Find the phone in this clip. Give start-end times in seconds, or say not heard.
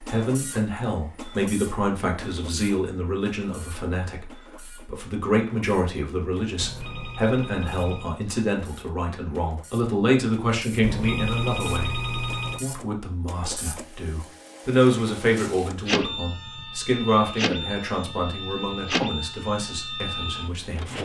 6.6-8.2, 10.8-12.7.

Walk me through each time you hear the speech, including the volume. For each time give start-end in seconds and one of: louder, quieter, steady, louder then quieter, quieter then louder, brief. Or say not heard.
0.0-21.0 steady.